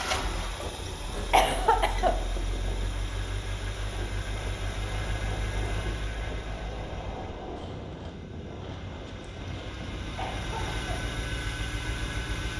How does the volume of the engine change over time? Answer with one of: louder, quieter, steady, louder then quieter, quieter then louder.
quieter then louder.